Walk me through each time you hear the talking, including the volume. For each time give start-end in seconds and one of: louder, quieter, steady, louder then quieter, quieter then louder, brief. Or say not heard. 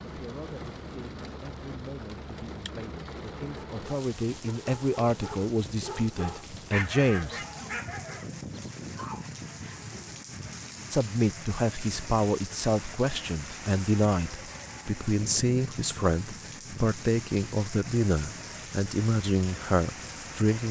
0.0-7.4 louder
10.9-20.6 steady.